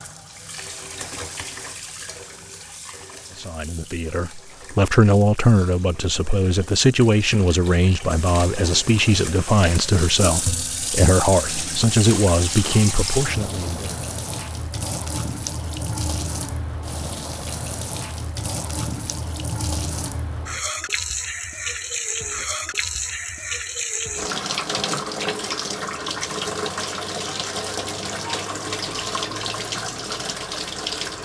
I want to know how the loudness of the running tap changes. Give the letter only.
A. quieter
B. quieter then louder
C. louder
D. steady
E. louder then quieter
C.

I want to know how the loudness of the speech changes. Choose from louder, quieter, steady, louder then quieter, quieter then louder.
steady.